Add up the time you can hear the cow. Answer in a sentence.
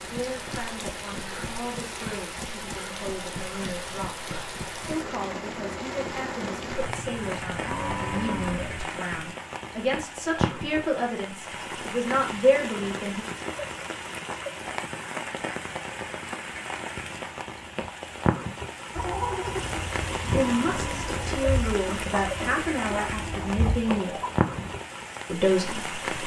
You can hear the cow for 4 seconds altogether.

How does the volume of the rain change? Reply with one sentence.
The loudness of the rain stays about the same.